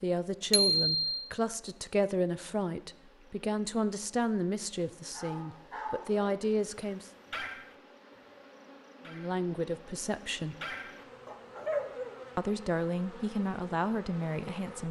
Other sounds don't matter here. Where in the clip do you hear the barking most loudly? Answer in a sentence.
The loudest moment of the barking is at 12 seconds.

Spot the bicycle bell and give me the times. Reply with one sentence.
You can hear the bicycle bell from 0.5 to 1.1 s.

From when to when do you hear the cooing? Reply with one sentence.
The cooing can't be heard in this clip.